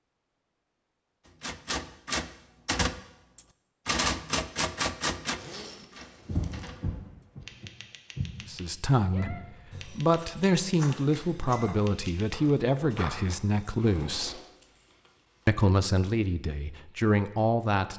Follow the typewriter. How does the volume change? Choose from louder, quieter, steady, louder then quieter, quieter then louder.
quieter.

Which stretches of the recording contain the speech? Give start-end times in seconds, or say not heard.
8.4-14.4, 15.4-17.9.